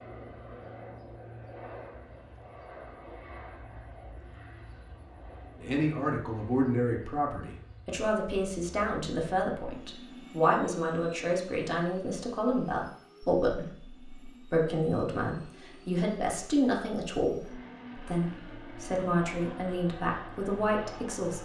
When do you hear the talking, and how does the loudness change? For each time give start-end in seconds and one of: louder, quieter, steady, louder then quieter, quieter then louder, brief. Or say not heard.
5.6-21.4 steady.